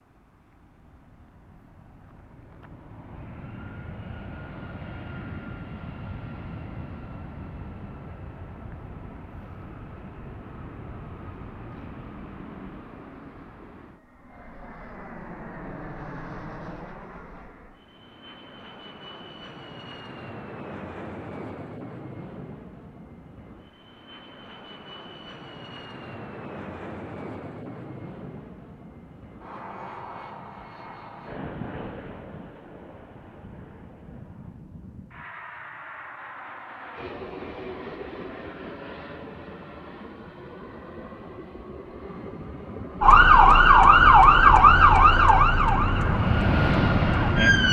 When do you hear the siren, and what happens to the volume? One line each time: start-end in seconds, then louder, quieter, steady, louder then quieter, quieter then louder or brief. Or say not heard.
43.0-47.6 quieter.